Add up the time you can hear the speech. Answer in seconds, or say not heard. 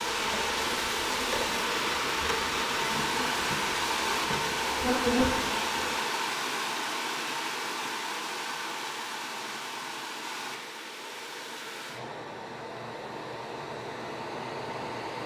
not heard.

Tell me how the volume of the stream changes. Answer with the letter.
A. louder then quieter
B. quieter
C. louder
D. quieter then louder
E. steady
B.